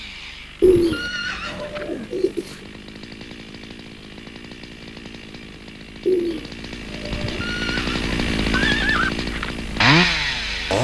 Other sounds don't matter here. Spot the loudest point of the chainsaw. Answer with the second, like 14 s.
10 s.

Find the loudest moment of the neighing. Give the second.
9 s.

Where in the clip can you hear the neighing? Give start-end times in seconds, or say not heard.
0.6-1.8, 7.1-9.1.